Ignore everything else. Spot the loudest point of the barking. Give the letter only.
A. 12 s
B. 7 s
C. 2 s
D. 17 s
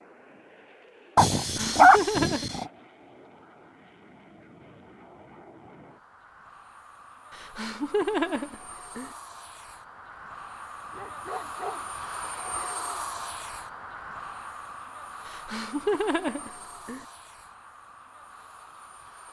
C.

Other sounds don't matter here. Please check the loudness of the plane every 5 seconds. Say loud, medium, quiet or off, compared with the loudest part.
quiet, medium, loud, medium.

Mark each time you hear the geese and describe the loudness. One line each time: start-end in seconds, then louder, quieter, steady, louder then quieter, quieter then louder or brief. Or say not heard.
not heard.